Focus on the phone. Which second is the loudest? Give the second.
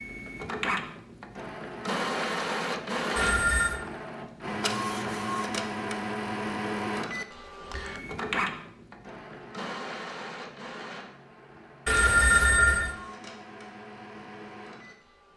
12 s.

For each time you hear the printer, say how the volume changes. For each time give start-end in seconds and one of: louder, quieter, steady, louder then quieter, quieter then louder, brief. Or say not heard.
0.0-15.3 quieter.